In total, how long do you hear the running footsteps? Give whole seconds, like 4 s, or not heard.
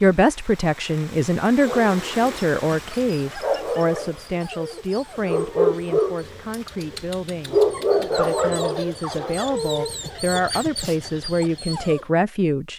not heard.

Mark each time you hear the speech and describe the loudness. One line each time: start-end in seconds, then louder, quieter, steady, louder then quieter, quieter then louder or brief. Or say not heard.
0.0-12.7 quieter then louder.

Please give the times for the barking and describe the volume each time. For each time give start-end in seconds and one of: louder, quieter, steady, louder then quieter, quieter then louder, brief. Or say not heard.
1.6-12.0 louder then quieter.